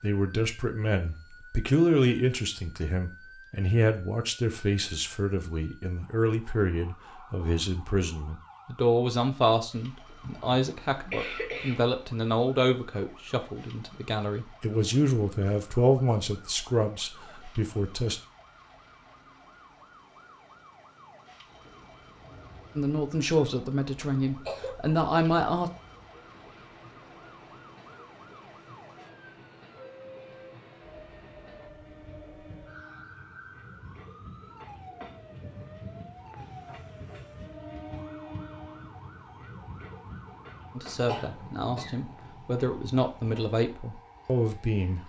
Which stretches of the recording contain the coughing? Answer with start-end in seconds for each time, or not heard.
10.2-11.9, 24.0-24.8, 41.0-42.1.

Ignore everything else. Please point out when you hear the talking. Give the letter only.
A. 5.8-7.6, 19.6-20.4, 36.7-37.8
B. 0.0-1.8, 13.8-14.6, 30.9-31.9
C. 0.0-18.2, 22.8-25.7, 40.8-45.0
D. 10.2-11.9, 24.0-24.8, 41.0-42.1
C.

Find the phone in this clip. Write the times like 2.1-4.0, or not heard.
not heard.